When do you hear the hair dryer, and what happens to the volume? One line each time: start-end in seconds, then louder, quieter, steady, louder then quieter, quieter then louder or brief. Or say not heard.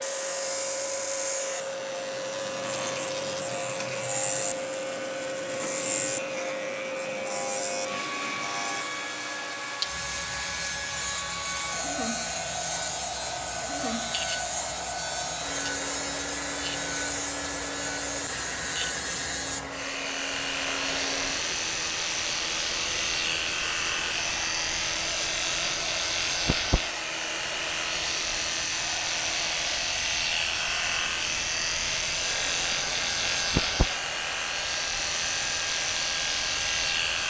0.0-37.2 steady.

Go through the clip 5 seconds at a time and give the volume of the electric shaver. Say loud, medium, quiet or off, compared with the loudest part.
medium, medium, medium, medium, loud, loud, loud, loud.